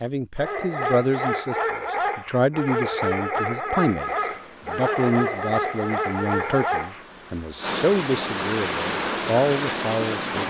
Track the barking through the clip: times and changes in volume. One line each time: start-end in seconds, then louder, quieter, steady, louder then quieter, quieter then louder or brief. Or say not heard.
0.3-7.0 steady.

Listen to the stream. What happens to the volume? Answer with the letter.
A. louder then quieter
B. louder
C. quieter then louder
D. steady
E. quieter
B.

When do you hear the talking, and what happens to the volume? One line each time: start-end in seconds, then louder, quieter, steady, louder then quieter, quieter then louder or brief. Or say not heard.
0.0-10.4 steady.